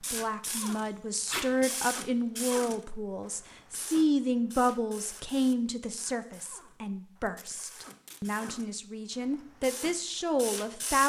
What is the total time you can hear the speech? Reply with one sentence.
The speech can be heard for 11 seconds in total.